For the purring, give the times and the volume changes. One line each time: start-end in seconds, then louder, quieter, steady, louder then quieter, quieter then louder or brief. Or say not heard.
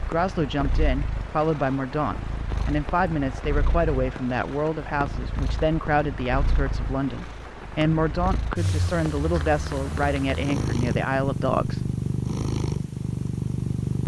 0.0-14.0 louder.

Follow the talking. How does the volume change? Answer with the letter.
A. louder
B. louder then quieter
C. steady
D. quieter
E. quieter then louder
C.